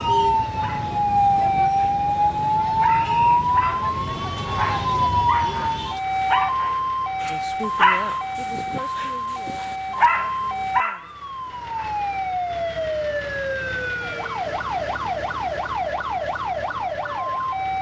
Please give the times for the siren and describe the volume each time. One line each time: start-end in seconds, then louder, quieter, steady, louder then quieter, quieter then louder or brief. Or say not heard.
0.0-17.7 quieter.